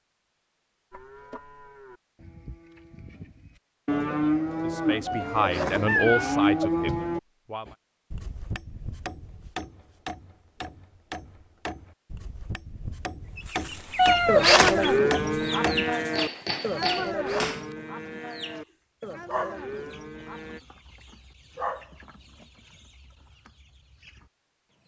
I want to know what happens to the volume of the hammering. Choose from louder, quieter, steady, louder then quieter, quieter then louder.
louder.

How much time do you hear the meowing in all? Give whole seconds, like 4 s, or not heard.
3 s.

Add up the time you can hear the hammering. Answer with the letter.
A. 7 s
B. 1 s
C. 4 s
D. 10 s
D.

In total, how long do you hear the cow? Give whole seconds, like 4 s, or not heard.
13 s.